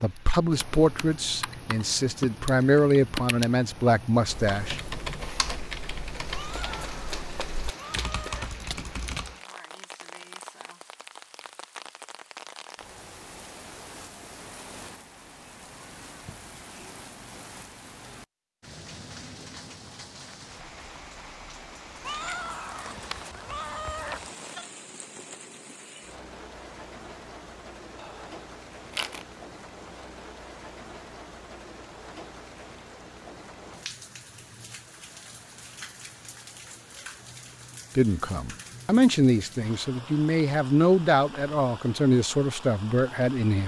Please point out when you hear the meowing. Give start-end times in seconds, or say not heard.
6.3-8.6, 22.0-24.6.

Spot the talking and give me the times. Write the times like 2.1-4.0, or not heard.
0.0-4.8, 38.0-43.6.